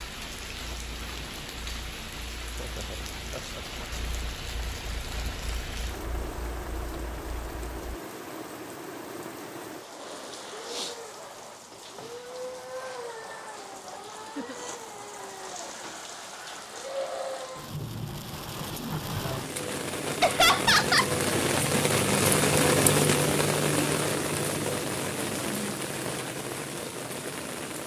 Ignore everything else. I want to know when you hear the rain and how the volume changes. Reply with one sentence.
The rain can be heard from 0.0 to 27.8 s, getting louder.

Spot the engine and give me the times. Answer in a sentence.
You can hear the engine from 0.0 to 7.8 s.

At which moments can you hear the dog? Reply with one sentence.
You can't hear the dog here.